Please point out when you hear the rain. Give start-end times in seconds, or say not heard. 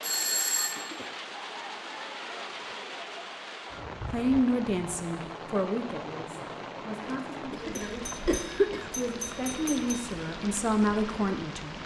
0.0-11.8.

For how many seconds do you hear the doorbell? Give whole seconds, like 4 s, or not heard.
3 s.